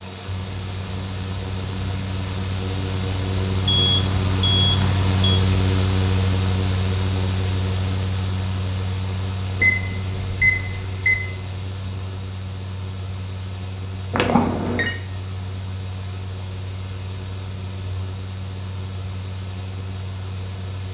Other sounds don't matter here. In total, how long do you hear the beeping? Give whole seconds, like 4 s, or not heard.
4 s.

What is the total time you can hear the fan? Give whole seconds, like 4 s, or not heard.
21 s.